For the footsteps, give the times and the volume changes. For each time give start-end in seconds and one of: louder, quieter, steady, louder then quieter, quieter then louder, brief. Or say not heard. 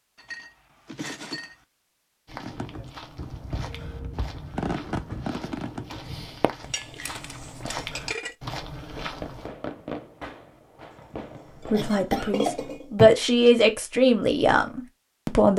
2.2-9.5 louder.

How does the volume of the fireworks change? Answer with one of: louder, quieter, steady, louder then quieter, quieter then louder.
louder then quieter.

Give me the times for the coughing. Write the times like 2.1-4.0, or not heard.
11.7-13.2.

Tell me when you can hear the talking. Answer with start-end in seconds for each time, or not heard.
11.7-15.5.